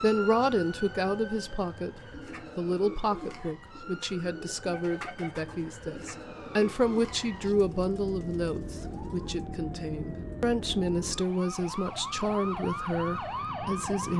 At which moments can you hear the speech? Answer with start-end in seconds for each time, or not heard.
0.0-14.1.